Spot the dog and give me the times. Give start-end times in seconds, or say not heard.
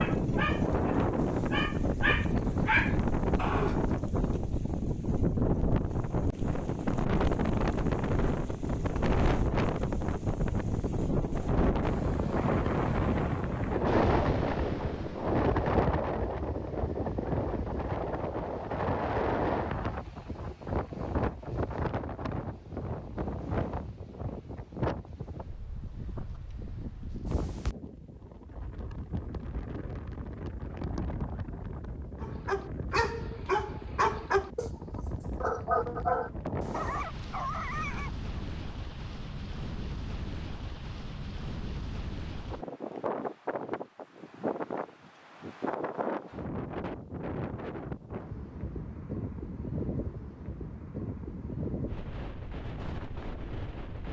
0.0-3.8, 32.2-38.4.